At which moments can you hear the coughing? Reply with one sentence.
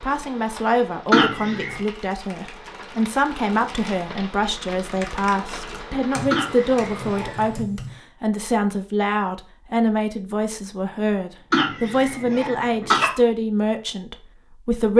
The coughing can be heard from 1.1 to 1.8 s, from 6.3 to 7.5 s and from 11.5 to 13.1 s.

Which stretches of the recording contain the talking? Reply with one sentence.
You can hear the talking from 0.0 to 14.9 s.